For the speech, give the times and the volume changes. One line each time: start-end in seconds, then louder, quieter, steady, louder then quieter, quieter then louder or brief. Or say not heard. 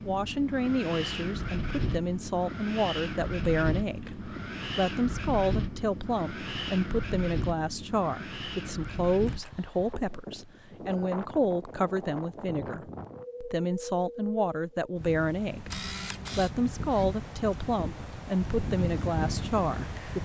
0.1-20.1 steady.